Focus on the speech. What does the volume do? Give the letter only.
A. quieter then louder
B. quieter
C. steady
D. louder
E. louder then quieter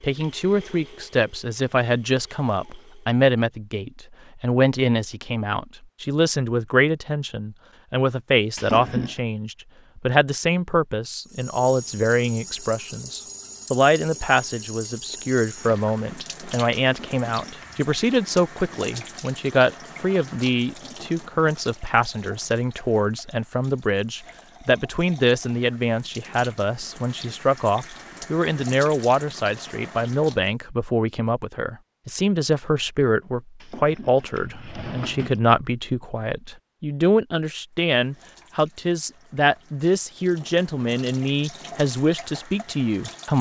C.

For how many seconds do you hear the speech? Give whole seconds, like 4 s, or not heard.
43 s.